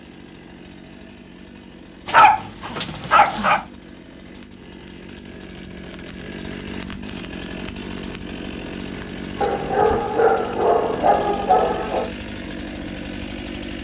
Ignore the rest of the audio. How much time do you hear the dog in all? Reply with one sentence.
You can hear the dog for 4 seconds altogether.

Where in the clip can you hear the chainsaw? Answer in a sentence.
The chainsaw can be heard from 0.0 to 13.7 s.